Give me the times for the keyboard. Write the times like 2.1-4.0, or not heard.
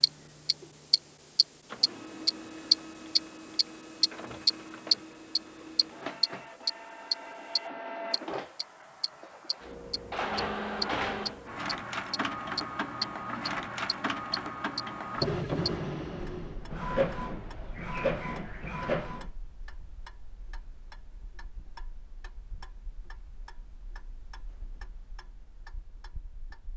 not heard.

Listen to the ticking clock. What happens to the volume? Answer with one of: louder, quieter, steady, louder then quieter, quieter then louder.
quieter.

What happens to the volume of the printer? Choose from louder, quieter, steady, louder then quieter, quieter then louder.
louder.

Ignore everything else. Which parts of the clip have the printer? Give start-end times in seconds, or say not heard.
0.0-19.3.